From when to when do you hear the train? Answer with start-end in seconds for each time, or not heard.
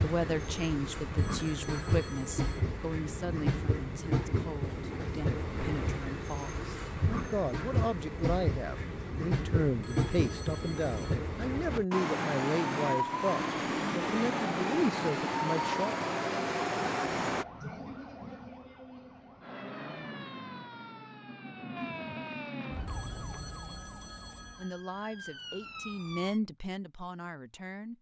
0.0-17.4.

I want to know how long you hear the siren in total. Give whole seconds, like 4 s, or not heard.
9 s.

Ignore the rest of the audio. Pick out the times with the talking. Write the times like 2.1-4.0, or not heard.
0.0-15.9, 24.6-27.9.